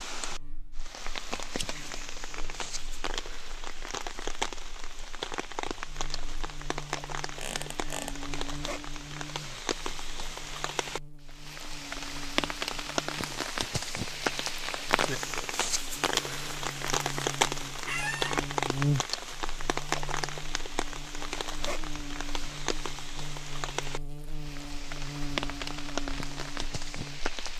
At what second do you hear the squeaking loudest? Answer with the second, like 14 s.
18 s.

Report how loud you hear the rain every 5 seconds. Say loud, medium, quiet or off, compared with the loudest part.
medium, medium, loud, loud, medium, medium.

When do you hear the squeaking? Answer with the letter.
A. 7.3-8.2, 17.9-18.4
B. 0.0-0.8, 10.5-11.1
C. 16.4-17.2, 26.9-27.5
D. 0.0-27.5
A.